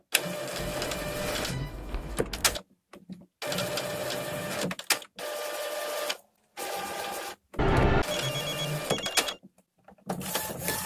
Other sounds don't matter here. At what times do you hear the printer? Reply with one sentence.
The printer can be heard from 0.1 to 10.8 s.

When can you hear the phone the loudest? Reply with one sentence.
The loudest moment of the phone is at 8 seconds.